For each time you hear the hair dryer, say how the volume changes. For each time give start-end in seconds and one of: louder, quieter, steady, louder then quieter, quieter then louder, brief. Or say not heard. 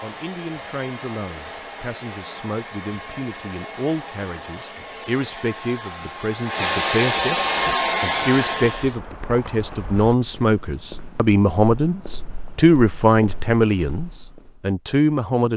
0.0-9.0 louder.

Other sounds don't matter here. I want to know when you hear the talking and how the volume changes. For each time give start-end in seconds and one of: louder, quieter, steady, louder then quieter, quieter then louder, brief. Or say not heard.
0.0-15.5 louder.